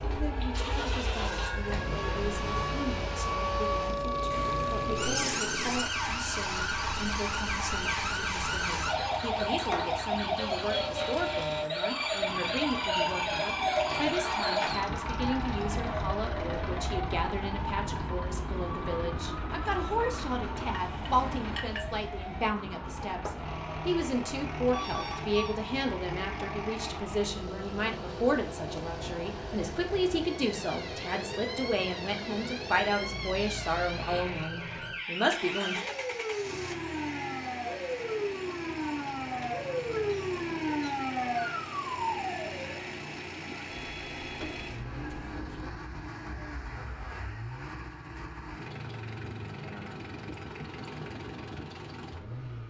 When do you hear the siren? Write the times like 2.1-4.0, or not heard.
0.0-42.8.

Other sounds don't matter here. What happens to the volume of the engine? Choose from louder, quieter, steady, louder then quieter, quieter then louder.
steady.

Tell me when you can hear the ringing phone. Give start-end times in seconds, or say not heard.
4.3-5.2, 24.7-25.6, 43.6-45.7.